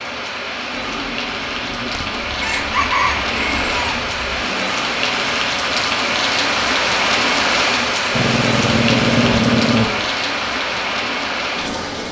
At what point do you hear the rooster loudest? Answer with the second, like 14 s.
3 s.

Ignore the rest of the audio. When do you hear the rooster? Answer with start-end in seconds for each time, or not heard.
1.9-4.5.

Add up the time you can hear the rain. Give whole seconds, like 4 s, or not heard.
12 s.